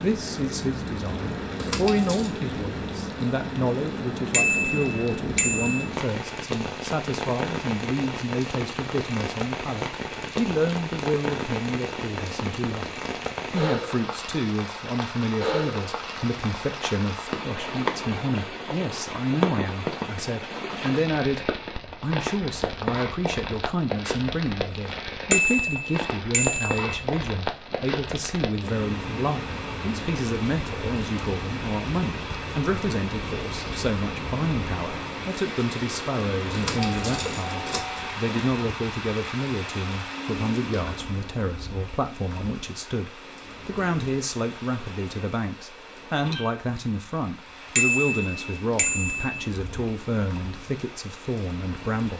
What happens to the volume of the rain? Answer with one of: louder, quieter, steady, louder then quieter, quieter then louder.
quieter.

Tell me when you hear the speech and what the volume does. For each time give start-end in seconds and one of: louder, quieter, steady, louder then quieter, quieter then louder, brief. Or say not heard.
0.0-52.1 steady.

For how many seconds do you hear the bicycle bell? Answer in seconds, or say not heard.
5 s.